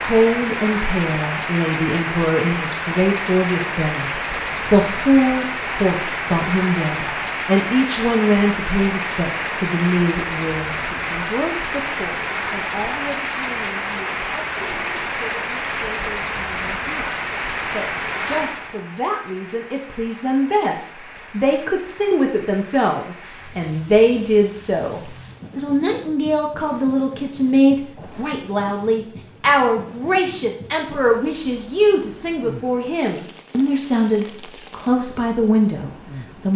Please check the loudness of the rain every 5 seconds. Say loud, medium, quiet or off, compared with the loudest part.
loud, loud, loud, loud, quiet, quiet, quiet, quiet.